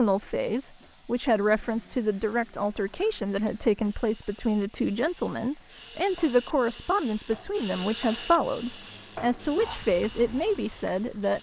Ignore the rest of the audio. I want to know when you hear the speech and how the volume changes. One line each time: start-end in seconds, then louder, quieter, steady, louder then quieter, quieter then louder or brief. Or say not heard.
0.0-11.3 steady.